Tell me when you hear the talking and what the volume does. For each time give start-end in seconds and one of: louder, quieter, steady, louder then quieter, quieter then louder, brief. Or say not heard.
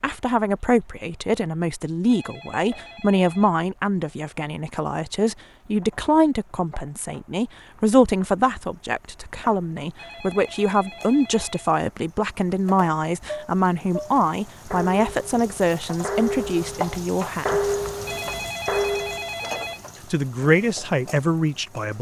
0.0-17.7 steady
20.1-21.9 brief.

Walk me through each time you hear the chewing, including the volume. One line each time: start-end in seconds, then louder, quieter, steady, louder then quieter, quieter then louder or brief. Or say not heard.
not heard.